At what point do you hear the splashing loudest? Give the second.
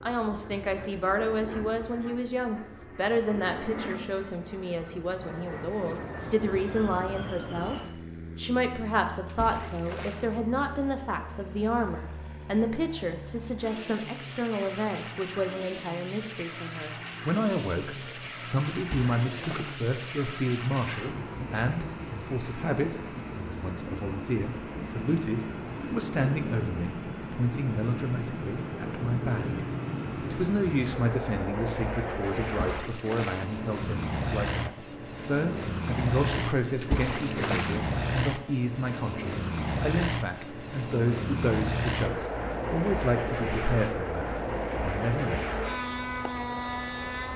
37 s.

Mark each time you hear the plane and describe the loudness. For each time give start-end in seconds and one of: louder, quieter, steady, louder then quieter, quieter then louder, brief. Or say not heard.
0.0-47.3 louder.